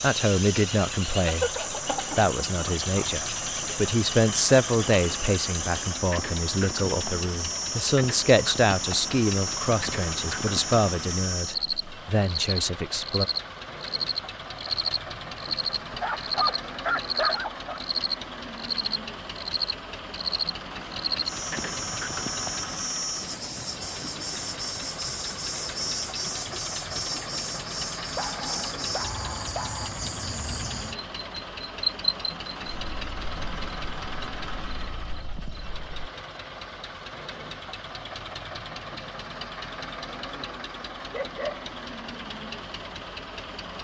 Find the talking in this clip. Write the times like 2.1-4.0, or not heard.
0.0-13.2.